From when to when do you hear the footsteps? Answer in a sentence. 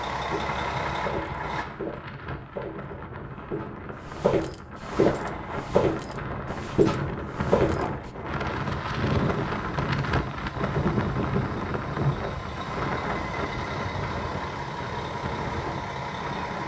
The footsteps can be heard from 0.1 to 7.8 s.